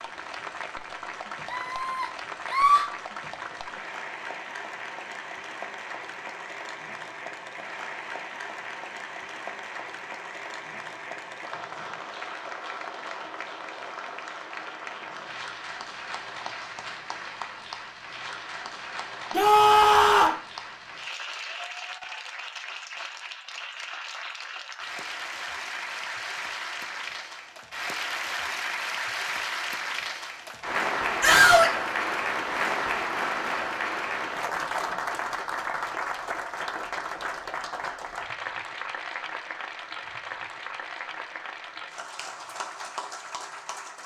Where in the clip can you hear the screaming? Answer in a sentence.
You can hear the screaming from 1.4 to 2.9 s, from 19.3 to 20.4 s and from 31.2 to 31.8 s.